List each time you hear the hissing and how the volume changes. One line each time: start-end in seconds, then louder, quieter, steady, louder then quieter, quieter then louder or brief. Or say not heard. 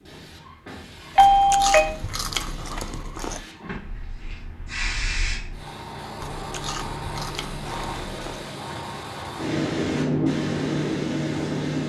0.0-11.8 louder.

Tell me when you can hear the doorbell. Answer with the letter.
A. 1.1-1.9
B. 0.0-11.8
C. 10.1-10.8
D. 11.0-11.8
A.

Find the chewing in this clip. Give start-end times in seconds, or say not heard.
1.1-3.5, 6.2-8.4.